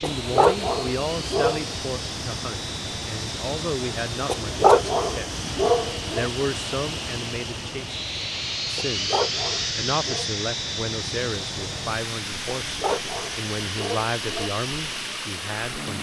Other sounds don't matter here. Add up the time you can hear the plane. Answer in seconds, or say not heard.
16 s.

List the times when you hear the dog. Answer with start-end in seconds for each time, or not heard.
0.0-1.6, 4.2-6.2, 8.8-10.2, 12.7-14.5.